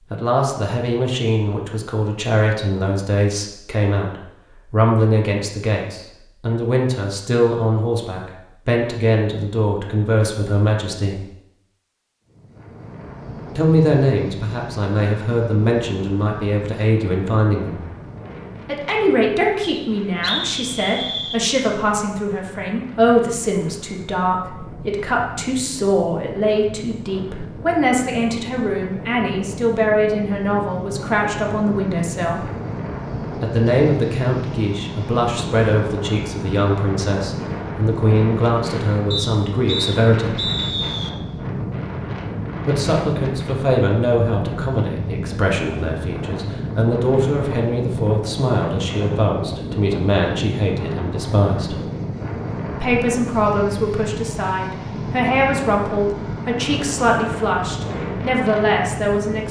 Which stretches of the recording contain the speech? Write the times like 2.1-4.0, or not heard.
0.1-11.2, 13.6-17.8, 18.6-32.5, 33.4-40.4, 42.6-51.8, 52.8-59.4.